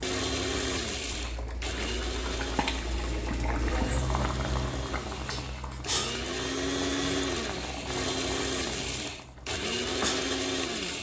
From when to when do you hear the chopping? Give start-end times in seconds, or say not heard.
not heard.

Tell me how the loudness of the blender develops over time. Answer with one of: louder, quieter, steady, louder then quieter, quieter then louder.
quieter then louder.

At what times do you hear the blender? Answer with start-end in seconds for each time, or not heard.
0.0-10.9.